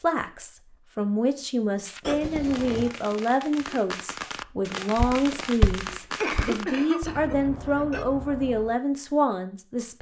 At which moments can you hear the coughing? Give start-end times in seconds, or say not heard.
2.0-2.9, 6.2-8.1.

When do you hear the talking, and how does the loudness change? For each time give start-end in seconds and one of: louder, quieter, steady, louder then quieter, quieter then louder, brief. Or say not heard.
0.0-9.9 steady.